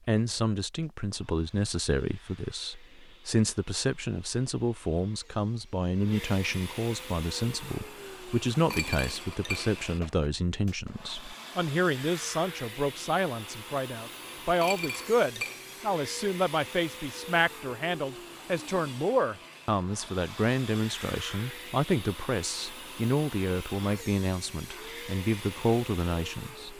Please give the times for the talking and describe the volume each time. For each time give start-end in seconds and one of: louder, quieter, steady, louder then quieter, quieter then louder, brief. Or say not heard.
0.1-26.7 steady.